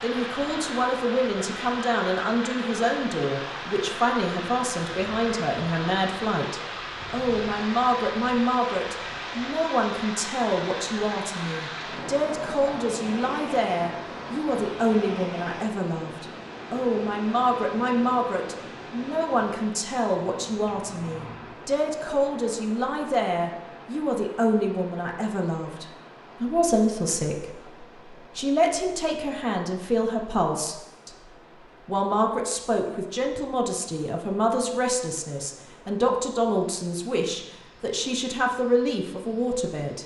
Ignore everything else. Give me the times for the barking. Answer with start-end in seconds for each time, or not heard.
not heard.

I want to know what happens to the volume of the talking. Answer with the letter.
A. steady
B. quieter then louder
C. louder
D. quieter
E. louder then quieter
A.